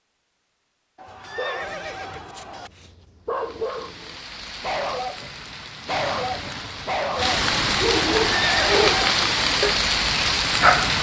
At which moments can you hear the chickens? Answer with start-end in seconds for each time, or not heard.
not heard.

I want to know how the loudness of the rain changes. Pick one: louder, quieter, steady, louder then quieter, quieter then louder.
louder.